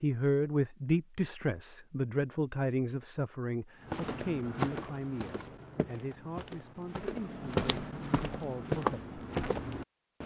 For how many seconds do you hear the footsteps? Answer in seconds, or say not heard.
6 s.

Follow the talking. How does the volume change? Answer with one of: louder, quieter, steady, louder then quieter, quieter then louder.
quieter.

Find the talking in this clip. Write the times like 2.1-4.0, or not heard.
0.0-9.0.